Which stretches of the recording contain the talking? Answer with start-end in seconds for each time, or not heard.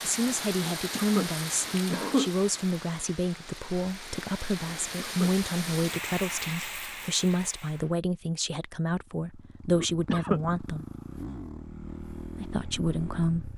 0.0-10.8, 12.3-13.5.